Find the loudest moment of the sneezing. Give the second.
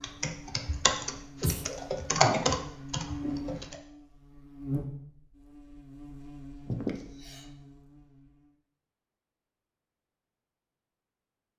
7 s.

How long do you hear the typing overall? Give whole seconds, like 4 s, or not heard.
4 s.